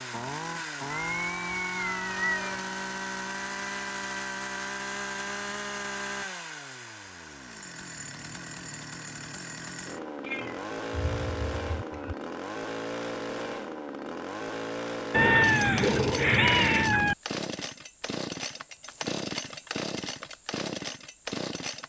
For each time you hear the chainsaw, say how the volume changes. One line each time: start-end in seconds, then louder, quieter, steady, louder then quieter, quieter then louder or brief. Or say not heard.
0.0-21.8 steady.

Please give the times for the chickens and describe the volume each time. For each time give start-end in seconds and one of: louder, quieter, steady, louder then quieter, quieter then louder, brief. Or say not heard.
not heard.